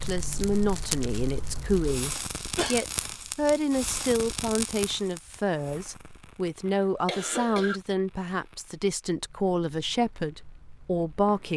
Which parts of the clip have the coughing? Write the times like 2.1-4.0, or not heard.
2.1-2.9, 6.7-7.8.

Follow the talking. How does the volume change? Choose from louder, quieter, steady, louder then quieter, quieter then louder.
steady.